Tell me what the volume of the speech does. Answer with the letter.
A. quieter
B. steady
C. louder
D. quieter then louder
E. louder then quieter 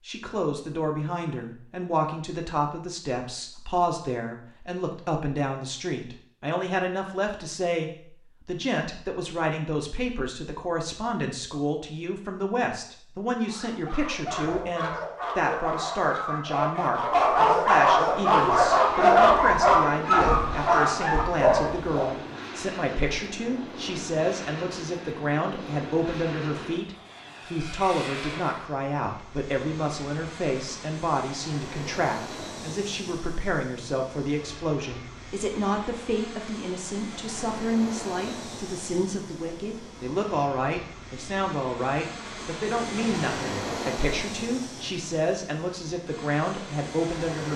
B.